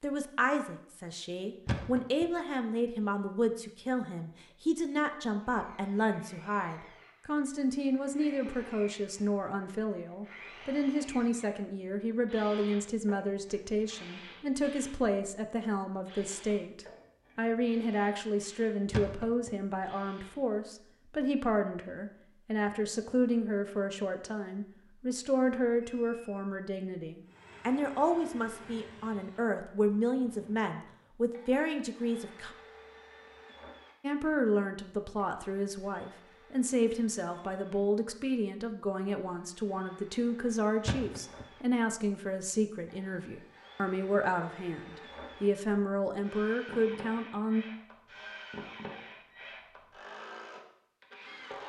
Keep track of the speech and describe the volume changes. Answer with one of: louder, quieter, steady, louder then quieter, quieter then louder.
steady.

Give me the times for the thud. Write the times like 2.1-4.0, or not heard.
1.6-2.2, 18.9-19.5, 40.9-41.5.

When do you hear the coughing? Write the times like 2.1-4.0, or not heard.
not heard.